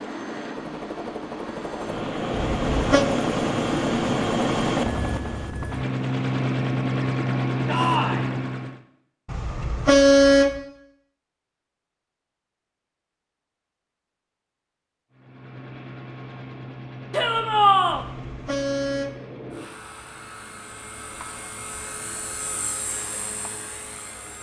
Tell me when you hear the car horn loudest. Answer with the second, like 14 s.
10 s.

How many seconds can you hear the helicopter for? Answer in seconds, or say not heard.
18 s.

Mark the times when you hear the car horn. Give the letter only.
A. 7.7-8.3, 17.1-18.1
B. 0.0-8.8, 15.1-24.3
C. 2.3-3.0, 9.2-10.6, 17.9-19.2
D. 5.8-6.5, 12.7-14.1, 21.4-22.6
C.